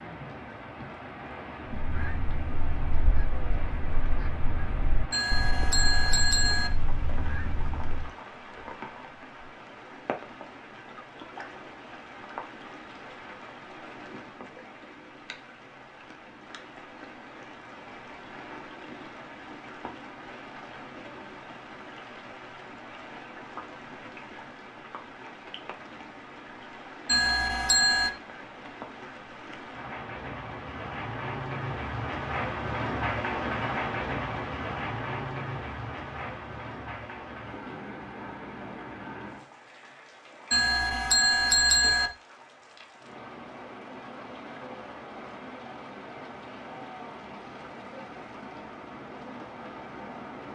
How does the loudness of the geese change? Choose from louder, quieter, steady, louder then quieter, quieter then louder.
steady.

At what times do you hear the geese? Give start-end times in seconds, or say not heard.
1.7-8.1.